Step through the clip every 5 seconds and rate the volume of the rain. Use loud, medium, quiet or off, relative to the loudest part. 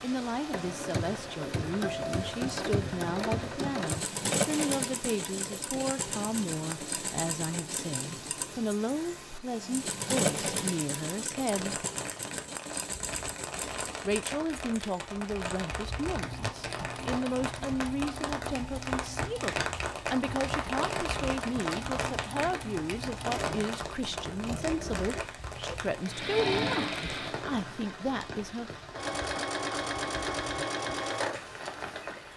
medium, medium, medium, loud, loud, medium, medium.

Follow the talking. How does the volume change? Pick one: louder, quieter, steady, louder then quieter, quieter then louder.
steady.